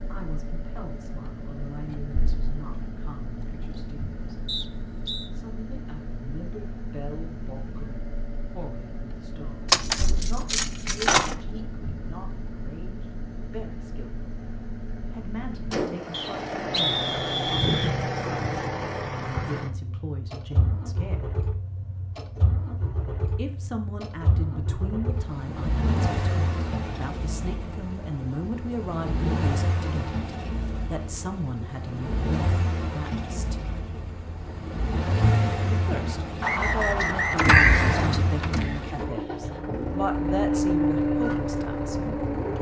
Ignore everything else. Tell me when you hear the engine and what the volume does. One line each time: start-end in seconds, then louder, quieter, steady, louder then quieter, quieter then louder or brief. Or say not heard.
0.0-42.5 louder.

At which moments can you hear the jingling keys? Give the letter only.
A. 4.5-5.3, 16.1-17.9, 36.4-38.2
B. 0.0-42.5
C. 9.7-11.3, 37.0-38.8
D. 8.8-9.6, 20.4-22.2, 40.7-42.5
C.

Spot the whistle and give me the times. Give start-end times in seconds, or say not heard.
4.5-5.3, 16.1-17.9, 36.4-38.2.